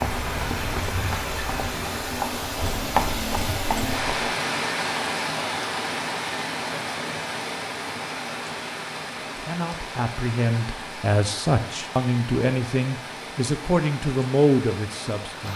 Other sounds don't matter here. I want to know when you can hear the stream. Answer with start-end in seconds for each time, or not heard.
0.0-15.5.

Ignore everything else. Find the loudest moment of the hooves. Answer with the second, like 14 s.
3 s.